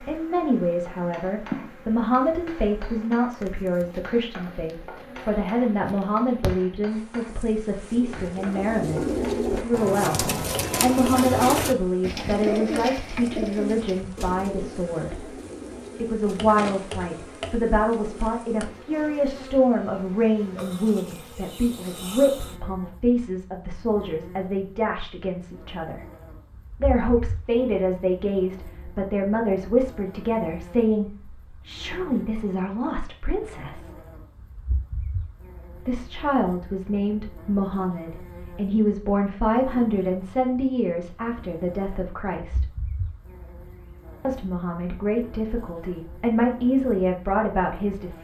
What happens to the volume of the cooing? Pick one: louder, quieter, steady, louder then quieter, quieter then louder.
quieter.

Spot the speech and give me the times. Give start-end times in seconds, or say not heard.
0.0-15.2, 16.0-26.0, 26.8-34.0, 35.9-42.7, 44.2-48.1.